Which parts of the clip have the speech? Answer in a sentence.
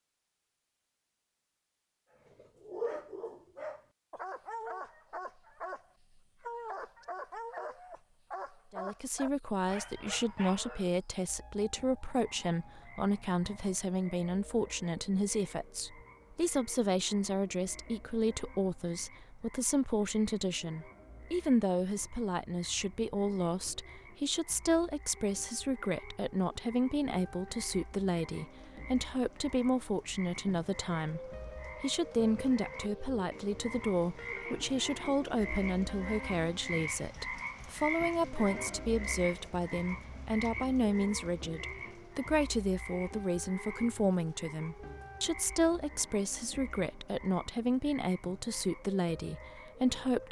You can hear the speech from 8.7 to 50.2 s.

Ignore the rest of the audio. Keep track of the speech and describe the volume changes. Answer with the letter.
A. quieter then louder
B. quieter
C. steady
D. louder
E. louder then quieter
C.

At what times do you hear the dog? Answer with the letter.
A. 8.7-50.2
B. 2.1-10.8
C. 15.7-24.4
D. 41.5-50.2
B.